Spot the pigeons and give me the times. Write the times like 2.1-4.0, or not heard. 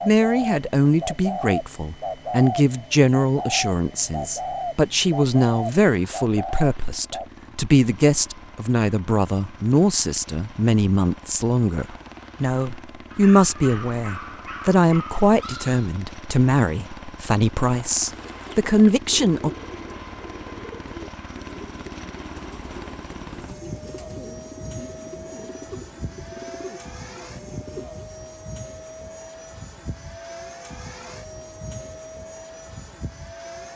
0.0-7.3, 18.1-27.9.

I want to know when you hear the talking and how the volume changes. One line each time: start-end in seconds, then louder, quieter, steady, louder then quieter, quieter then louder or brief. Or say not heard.
0.1-19.5 steady.